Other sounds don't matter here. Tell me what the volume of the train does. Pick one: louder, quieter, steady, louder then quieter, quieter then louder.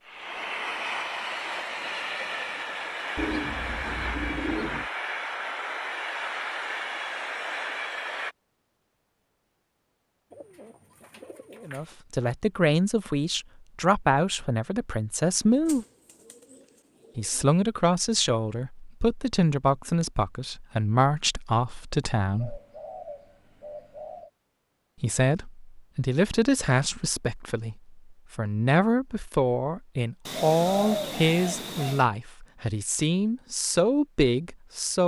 steady.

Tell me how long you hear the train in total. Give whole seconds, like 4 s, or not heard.
8 s.